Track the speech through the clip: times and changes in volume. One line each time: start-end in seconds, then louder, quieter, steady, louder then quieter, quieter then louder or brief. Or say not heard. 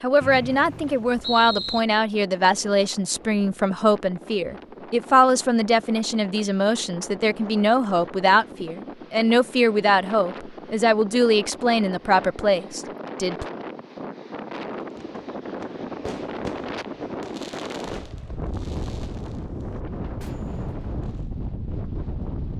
0.0-13.4 steady.